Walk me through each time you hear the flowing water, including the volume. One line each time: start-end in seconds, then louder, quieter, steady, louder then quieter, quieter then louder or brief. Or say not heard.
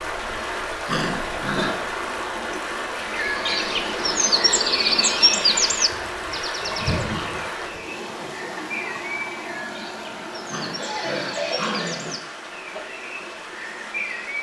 0.0-14.3 quieter.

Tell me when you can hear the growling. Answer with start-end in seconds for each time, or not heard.
0.8-1.8, 5.9-7.5, 10.5-12.2.